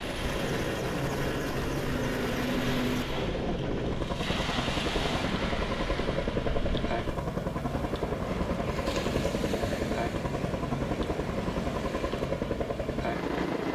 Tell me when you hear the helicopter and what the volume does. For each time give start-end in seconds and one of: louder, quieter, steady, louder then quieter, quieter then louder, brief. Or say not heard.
0.0-13.7 steady.